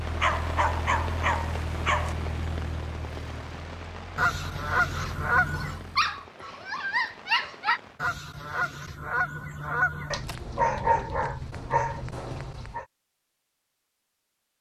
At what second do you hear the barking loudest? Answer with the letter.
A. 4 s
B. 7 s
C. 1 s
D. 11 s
D.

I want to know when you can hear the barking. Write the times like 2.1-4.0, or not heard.
0.2-2.1, 5.0-7.8, 10.1-12.8.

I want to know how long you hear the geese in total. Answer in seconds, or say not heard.
4 s.